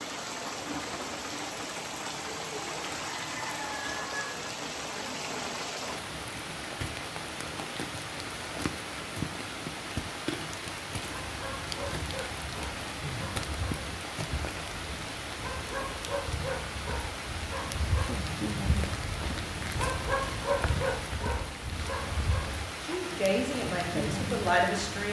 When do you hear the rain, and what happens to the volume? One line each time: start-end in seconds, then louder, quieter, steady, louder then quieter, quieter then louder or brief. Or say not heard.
0.0-25.0 steady.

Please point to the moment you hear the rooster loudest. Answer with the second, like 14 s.
4 s.